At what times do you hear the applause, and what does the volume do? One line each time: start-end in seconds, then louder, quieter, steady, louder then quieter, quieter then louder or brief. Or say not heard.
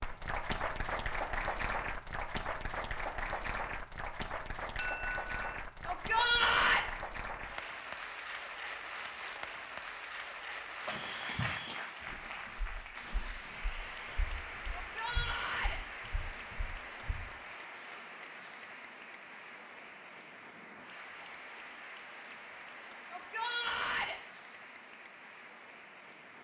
0.0-26.3 quieter.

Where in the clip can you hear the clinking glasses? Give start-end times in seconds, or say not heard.
4.8-5.4.